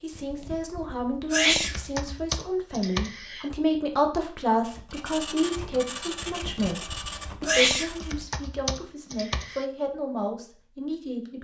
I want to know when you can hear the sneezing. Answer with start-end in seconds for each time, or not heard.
0.1-2.0, 6.3-8.0.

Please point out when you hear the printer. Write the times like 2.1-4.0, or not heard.
4.6-8.2.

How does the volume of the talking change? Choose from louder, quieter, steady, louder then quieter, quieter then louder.
louder then quieter.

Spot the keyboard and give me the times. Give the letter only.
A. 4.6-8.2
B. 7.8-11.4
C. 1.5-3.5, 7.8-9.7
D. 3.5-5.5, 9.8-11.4
C.